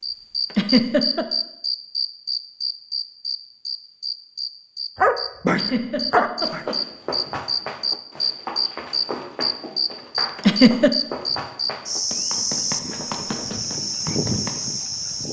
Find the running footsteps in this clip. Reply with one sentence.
You can hear the running footsteps from 6.4 to 14.6 s.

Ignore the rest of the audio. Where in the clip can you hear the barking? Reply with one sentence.
The barking can be heard from 5.0 to 6.7 s.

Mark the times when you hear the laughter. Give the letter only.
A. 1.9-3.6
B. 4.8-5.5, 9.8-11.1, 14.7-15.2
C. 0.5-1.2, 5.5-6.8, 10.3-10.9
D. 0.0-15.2
C.